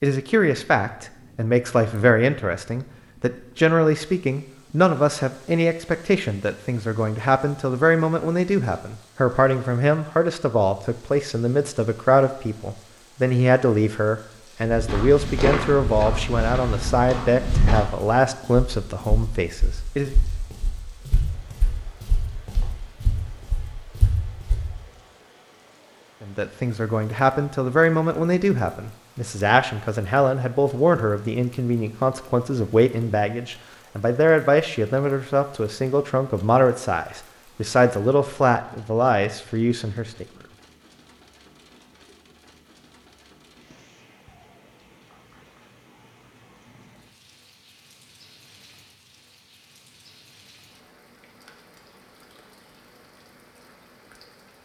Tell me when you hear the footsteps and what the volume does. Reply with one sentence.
The footsteps can be heard from 14.7 to 24.7 s, getting quieter then louder.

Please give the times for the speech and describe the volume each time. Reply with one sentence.
You can hear the speech from 0.0 to 20.1 s, at a steady volume; and from 26.2 to 40.2 s, at a steady volume.